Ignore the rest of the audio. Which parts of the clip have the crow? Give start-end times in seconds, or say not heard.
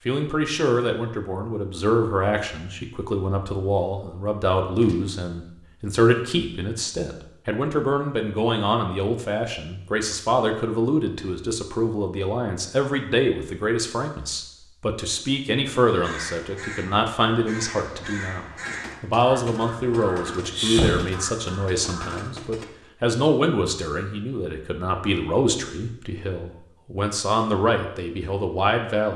15.8-22.3.